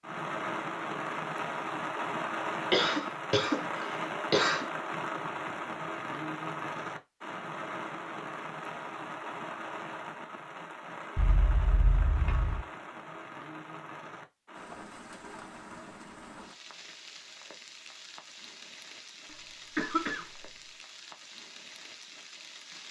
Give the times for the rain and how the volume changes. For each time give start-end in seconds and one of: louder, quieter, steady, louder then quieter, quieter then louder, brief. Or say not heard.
0.0-22.8 quieter.